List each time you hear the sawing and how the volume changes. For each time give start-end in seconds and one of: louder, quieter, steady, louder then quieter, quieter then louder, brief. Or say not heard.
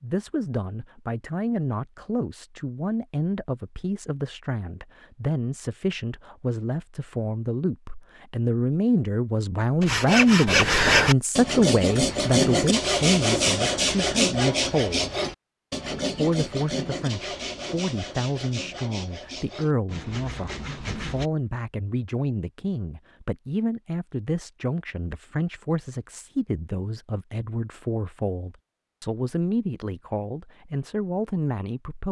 9.8-21.3 quieter.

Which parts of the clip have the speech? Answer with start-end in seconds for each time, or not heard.
0.0-15.1, 16.1-32.0.